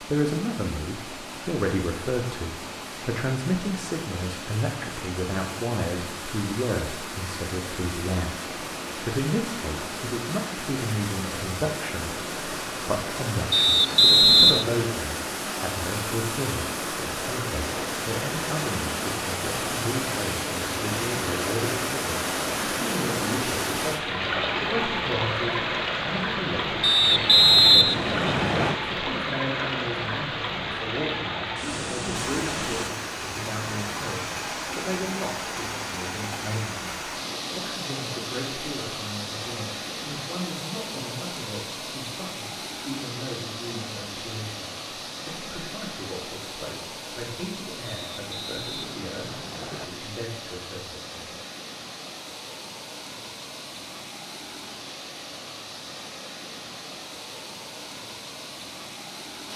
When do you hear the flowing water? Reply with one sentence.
The flowing water can be heard from 0.0 to 59.5 s.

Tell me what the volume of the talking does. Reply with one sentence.
The volume of the talking goes down.